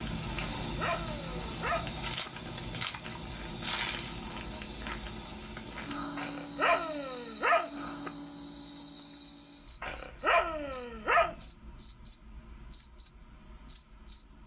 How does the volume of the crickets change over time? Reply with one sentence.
The volume of the crickets goes down.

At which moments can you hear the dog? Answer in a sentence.
The dog can be heard from 0.3 to 2.3 s, from 6.2 to 8.1 s and from 9.8 to 11.3 s.